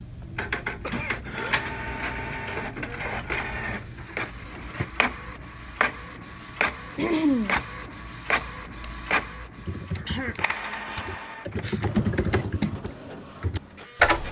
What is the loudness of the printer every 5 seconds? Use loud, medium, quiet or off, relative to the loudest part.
loud, loud, medium.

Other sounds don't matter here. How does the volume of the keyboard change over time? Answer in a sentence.
The loudness of the keyboard goes up, then down.